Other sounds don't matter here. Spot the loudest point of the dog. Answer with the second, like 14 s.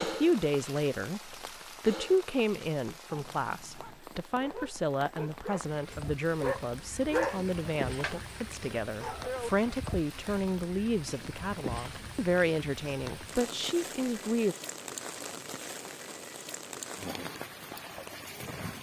7 s.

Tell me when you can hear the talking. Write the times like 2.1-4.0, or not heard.
0.0-14.6.